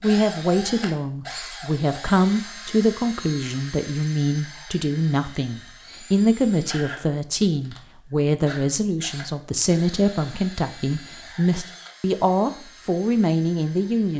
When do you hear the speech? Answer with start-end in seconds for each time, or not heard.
0.0-14.1.